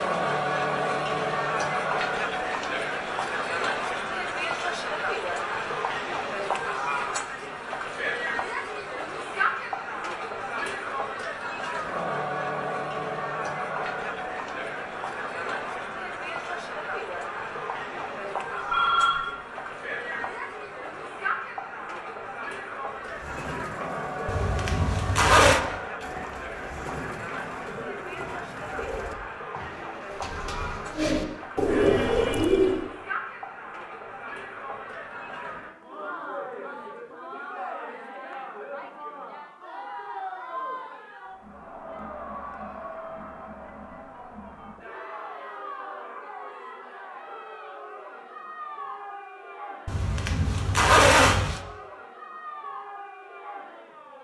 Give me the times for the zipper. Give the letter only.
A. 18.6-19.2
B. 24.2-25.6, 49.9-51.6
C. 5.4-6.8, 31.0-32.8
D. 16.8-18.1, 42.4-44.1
B.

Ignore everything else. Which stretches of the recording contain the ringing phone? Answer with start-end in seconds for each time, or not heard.
18.6-19.2.